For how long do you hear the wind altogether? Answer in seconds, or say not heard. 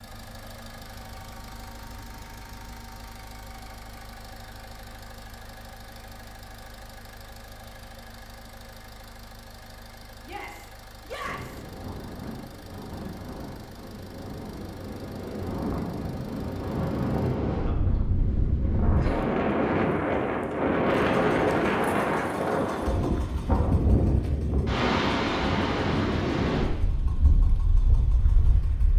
18 s.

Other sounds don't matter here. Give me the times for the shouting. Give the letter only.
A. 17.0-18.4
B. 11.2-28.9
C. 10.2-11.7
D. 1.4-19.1
C.